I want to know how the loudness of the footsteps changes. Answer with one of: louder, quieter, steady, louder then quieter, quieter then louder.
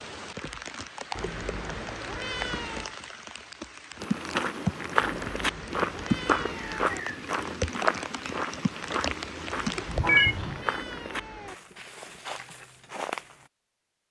quieter.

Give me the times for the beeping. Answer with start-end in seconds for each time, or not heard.
10.0-10.4.